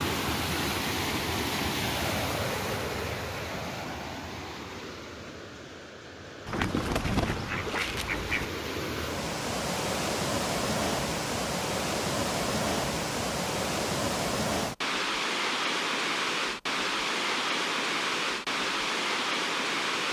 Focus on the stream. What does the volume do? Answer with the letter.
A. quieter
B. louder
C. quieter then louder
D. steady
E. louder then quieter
C.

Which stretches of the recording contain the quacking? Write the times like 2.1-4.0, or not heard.
6.5-8.4.